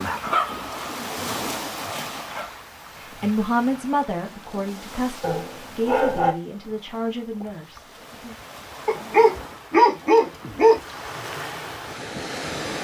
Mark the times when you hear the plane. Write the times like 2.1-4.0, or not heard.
not heard.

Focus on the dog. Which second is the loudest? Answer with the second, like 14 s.
10 s.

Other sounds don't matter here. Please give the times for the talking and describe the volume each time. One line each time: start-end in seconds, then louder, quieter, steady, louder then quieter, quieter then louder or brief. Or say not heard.
3.1-8.3 quieter.